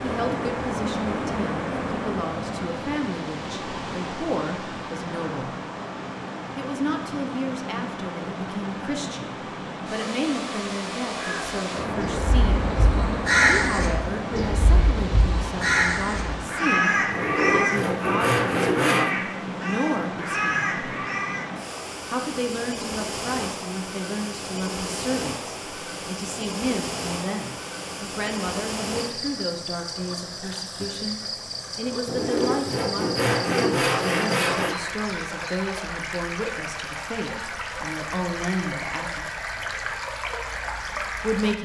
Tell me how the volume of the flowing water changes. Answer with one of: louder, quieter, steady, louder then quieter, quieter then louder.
steady.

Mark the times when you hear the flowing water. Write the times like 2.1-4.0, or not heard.
0.0-41.5.